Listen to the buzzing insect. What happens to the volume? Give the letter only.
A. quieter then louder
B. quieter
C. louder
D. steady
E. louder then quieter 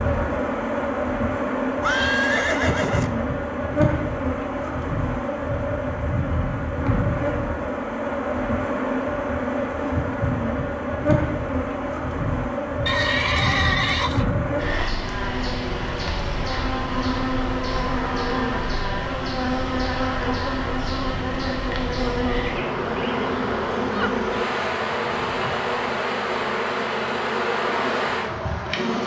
D.